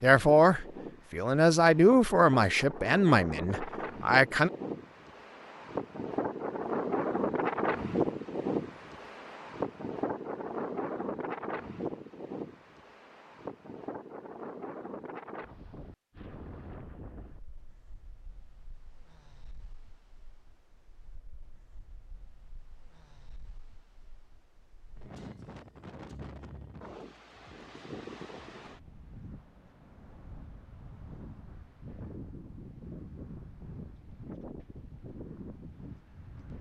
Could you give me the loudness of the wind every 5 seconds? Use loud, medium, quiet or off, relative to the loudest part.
medium, loud, medium, quiet, quiet, quiet, quiet, quiet.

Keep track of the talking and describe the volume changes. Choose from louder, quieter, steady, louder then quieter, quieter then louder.
quieter.